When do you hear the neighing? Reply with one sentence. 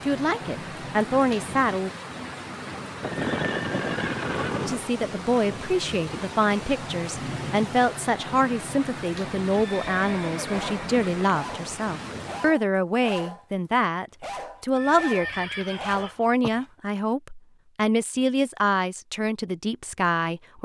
You can hear the neighing from 3.0 to 4.8 s, from 9.6 to 11.2 s and from 14.8 to 16.5 s.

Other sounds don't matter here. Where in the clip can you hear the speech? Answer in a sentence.
You can hear the speech from 0.1 to 1.9 s and from 4.7 to 20.6 s.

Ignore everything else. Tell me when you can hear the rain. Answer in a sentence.
The rain can be heard from 0.0 to 12.6 s.